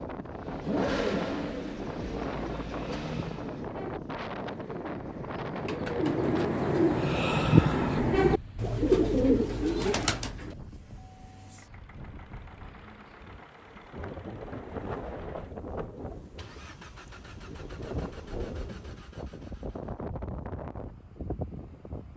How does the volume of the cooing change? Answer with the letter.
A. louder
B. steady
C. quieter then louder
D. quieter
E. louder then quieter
A.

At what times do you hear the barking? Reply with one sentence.
You can't hear the barking here.